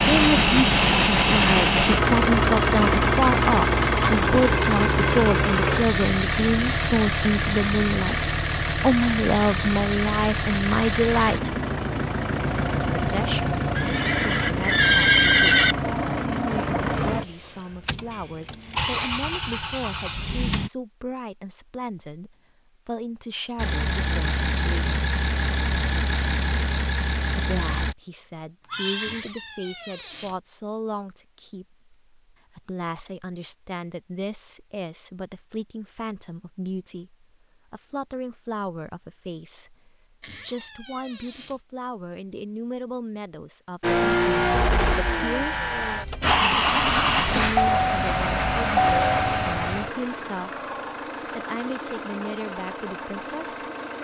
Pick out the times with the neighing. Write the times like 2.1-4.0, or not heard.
13.8-15.8, 28.7-29.2.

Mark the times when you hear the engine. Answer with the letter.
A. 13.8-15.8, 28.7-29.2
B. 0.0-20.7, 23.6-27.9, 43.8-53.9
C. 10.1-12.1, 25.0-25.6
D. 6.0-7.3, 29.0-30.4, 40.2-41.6
B.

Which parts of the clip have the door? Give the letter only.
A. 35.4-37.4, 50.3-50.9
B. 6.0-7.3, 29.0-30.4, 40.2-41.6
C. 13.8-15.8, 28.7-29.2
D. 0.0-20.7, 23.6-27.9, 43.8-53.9
B.